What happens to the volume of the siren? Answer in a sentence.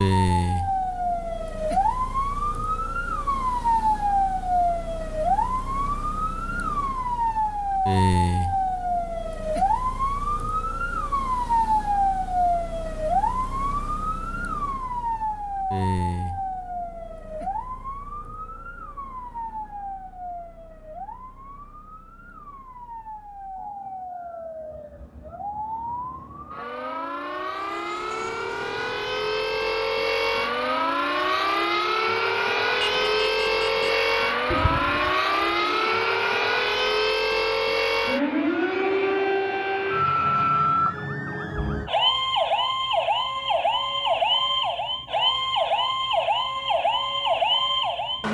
The loudness of the siren goes down, then up.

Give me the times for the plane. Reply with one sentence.
The plane can be heard from 27.5 to 41.0 s.